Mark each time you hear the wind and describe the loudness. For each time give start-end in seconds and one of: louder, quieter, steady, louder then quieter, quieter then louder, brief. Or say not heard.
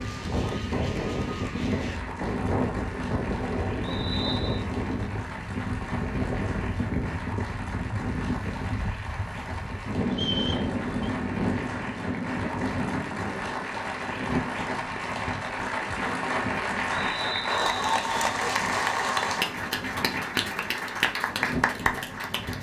0.0-22.5 quieter.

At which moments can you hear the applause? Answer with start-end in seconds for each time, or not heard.
0.0-22.5.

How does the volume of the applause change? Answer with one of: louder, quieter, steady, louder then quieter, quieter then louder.
louder.